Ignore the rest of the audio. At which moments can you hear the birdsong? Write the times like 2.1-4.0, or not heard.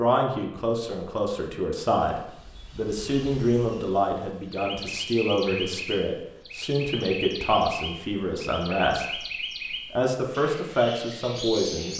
1.9-11.9.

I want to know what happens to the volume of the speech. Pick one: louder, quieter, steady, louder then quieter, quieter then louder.
steady.